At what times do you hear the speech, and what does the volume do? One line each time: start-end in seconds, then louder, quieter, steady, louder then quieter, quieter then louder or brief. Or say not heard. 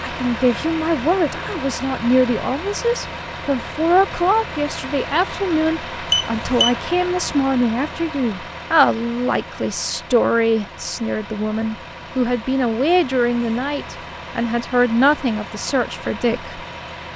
0.0-16.6 steady.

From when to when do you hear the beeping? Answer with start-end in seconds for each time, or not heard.
6.1-6.8.